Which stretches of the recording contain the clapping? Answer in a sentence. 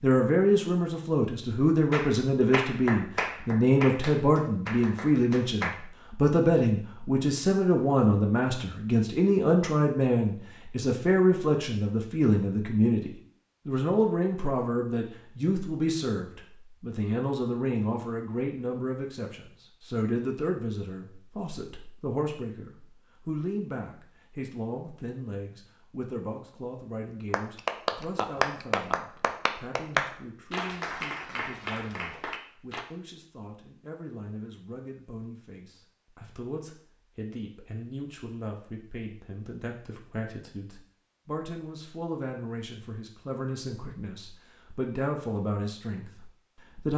The clapping can be heard from 1.9 to 5.8 s and from 27.3 to 32.9 s.